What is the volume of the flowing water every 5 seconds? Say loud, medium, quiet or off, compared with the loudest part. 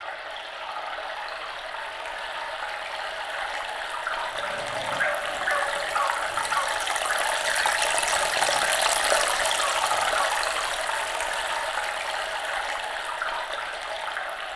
medium, loud, loud.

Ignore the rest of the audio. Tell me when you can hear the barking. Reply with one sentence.
You can hear the barking from 4.3 to 10.4 s.